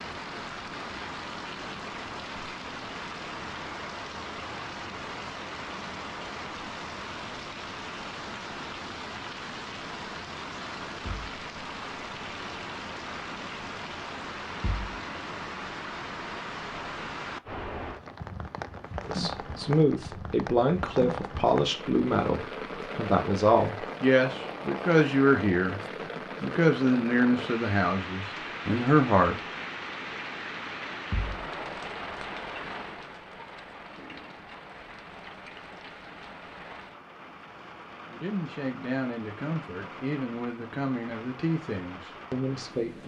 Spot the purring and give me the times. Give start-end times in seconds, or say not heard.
not heard.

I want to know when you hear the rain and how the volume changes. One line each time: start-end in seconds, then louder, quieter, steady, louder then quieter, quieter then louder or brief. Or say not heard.
0.0-43.0 quieter.